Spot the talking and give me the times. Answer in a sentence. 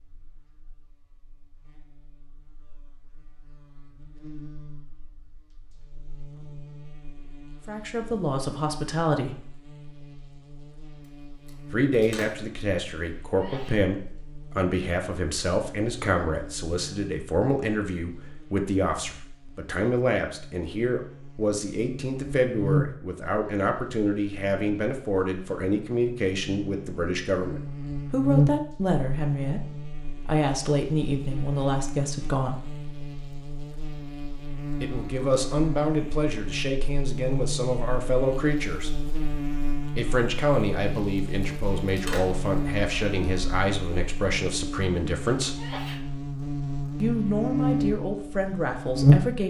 The talking can be heard from 7.7 to 9.4 s, from 11.7 to 32.6 s, from 34.8 to 38.9 s, from 40.0 to 45.5 s and from 47.0 to 49.4 s.